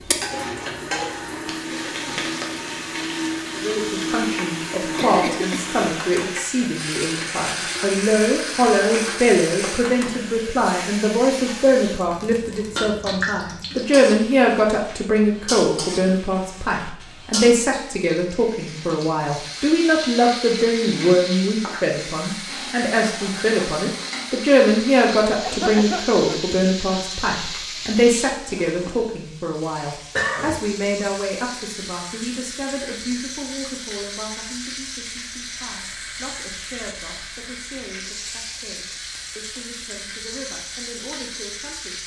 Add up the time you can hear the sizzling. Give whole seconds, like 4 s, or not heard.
42 s.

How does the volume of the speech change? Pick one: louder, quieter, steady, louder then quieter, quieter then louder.
quieter.